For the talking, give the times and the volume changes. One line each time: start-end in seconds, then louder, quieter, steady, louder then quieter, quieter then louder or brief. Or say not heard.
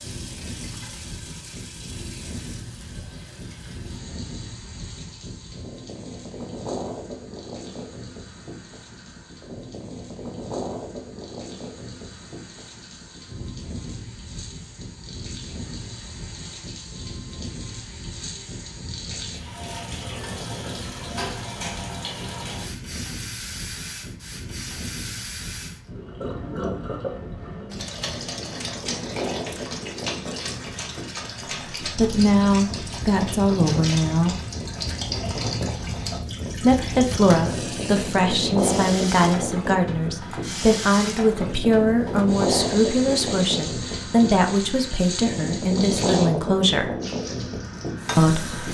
31.8-34.4 brief
36.6-46.9 steady
48.1-48.6 brief.